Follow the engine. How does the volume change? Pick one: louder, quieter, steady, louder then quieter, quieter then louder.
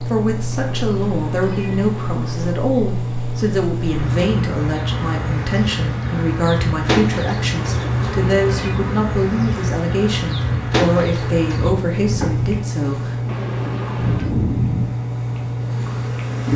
steady.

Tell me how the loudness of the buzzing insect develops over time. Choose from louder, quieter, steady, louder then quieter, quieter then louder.
louder.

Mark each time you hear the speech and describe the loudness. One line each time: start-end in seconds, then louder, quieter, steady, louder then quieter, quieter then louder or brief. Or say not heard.
0.1-13.3 steady.